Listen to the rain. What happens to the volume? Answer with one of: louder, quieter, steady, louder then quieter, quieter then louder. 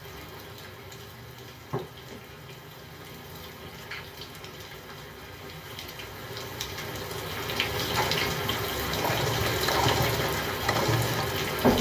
louder.